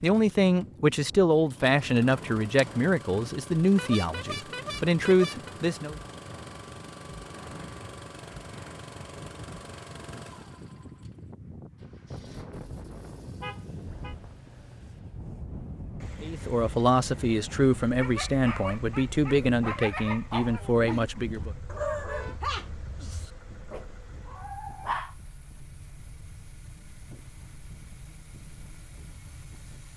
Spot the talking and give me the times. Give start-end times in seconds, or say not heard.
0.0-6.0, 16.2-21.5.